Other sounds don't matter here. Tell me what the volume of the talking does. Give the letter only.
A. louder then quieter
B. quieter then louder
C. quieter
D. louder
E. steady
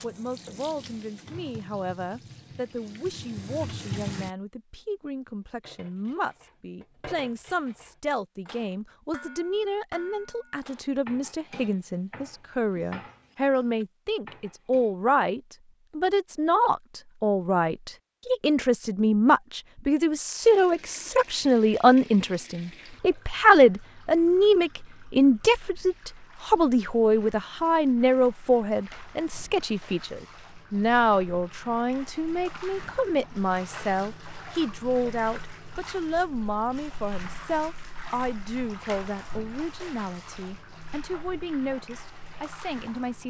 A.